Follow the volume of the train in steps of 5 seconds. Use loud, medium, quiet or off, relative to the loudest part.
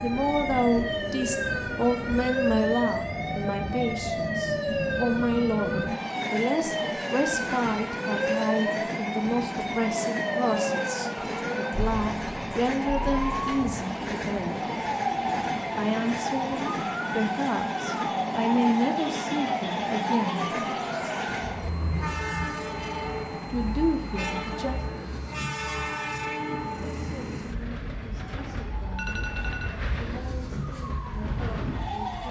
loud, loud, loud, loud, loud, loud, medium.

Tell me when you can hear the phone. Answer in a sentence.
You can hear the phone from 28.8 to 29.9 s.